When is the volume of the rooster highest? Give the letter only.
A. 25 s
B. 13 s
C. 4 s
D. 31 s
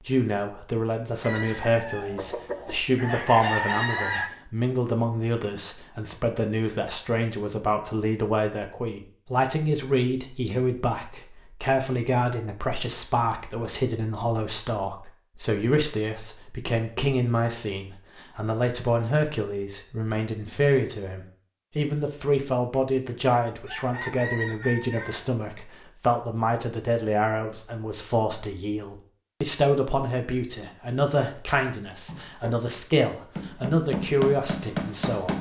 C.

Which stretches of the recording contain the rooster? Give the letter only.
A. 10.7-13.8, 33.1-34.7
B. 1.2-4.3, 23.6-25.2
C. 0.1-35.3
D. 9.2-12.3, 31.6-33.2
B.